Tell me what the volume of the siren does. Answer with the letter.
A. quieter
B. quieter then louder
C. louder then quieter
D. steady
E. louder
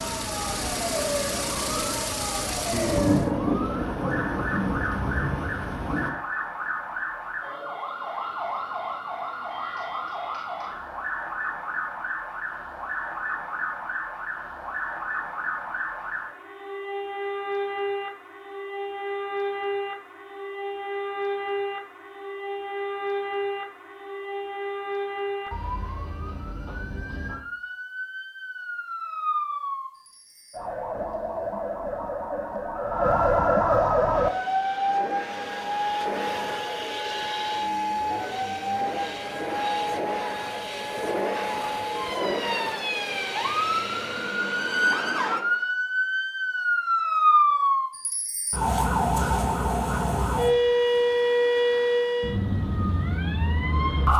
E.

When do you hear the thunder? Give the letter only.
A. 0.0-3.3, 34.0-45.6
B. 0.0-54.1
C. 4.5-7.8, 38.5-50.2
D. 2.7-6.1
D.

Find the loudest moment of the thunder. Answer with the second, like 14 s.
3 s.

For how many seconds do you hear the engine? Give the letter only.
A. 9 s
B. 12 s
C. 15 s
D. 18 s
C.